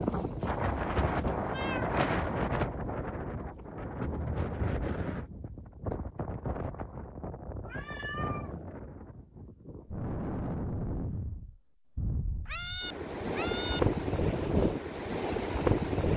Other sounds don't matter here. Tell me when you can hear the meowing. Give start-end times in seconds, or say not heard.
0.4-2.2, 7.7-8.6, 12.4-13.8.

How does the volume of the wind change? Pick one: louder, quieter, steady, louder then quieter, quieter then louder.
quieter then louder.